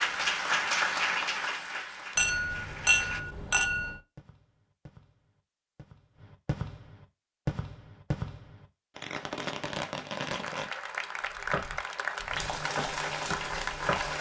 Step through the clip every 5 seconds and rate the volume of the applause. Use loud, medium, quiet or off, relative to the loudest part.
loud, off, loud.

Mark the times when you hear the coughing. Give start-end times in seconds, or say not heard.
not heard.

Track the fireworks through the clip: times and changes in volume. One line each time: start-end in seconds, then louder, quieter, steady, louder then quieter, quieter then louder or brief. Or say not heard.
4.2-10.7 louder.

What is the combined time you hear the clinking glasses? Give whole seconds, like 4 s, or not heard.
2 s.